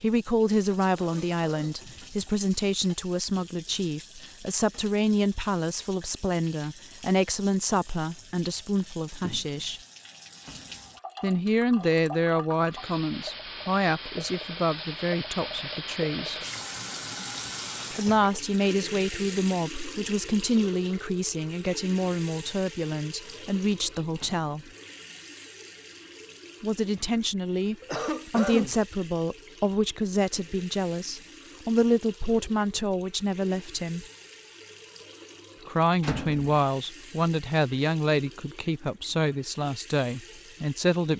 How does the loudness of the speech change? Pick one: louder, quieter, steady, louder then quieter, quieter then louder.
steady.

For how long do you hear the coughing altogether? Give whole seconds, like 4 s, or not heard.
2 s.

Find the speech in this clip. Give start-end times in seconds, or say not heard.
0.0-9.8, 11.2-16.4, 17.9-24.6, 26.6-34.0, 35.6-41.1.